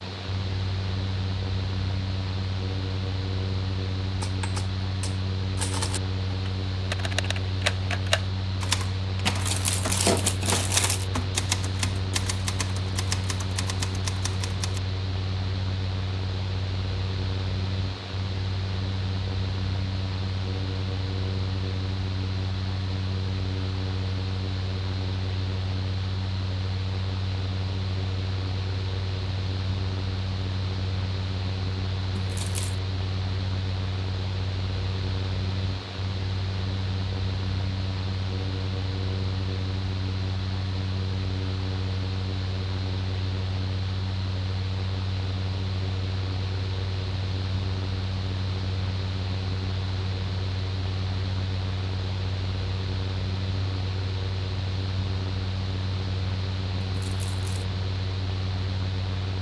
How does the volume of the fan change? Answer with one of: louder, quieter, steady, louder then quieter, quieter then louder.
steady.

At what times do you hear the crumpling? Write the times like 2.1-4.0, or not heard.
9.2-11.1, 32.1-32.8, 57.0-57.7.